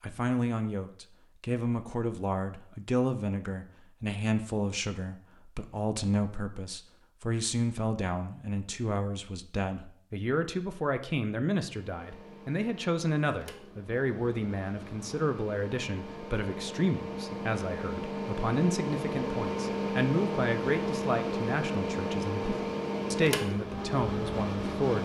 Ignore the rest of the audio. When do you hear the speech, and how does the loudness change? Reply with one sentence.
You can hear the speech from 0.0 to 24.9 s, at a steady volume.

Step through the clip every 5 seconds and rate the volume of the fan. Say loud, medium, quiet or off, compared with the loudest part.
off, off, quiet, loud, loud.